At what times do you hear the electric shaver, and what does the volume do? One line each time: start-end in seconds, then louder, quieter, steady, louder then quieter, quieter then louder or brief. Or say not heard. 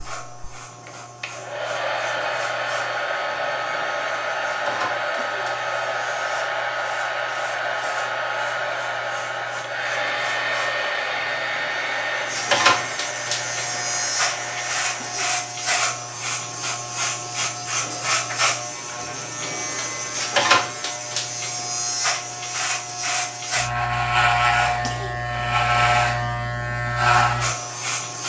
0.0-28.2 louder.